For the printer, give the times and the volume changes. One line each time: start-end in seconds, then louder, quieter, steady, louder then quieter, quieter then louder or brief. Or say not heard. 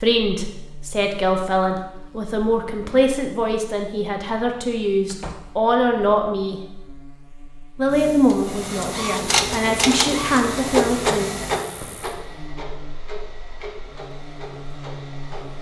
8.3-15.5 quieter.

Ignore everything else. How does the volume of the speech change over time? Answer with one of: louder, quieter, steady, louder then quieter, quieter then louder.
steady.